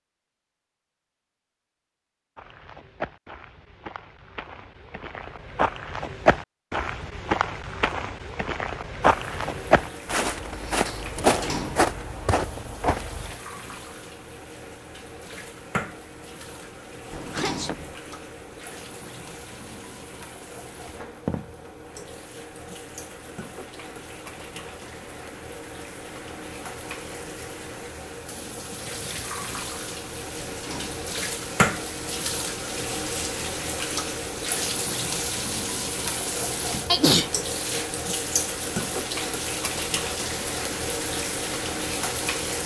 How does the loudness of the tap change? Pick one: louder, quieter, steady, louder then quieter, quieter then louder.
louder.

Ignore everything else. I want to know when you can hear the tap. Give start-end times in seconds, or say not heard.
9.1-42.6.